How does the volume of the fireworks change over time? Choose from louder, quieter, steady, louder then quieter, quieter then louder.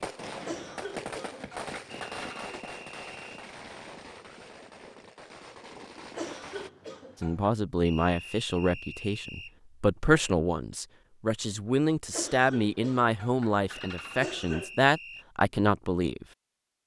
quieter.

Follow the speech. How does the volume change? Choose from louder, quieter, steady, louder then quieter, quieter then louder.
steady.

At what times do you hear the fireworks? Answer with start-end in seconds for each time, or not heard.
0.0-6.7.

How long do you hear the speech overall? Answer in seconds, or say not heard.
9 s.